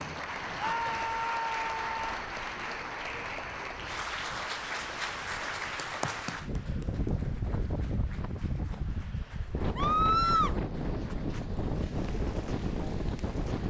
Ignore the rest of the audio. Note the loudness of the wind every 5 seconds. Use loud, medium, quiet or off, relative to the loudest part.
quiet, loud, loud.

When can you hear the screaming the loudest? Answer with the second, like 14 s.
10 s.